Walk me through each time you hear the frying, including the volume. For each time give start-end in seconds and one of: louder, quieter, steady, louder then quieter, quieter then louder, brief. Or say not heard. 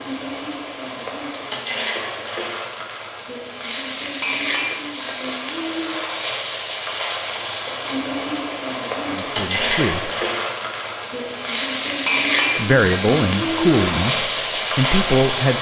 0.0-15.5 louder.